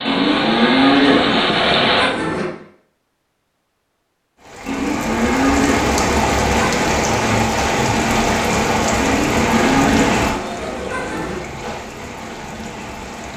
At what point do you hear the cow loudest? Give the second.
1 s.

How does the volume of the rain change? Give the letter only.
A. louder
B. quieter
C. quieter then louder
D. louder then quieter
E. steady
B.